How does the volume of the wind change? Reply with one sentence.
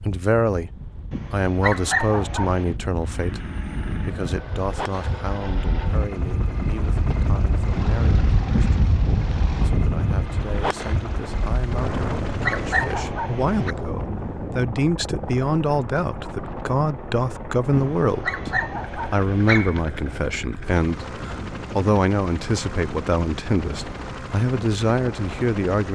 The loudness of the wind goes up, then down.